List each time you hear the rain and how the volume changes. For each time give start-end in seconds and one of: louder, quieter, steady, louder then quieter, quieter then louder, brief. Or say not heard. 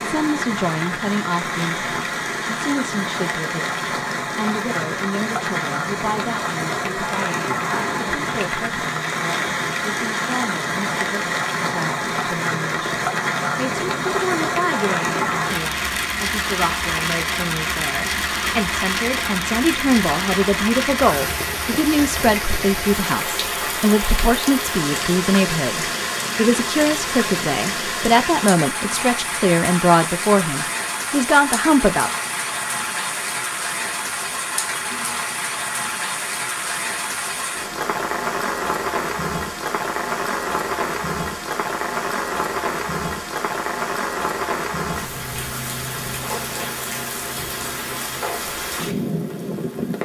0.0-50.0 steady.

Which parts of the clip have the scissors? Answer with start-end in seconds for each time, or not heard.
7.7-8.5.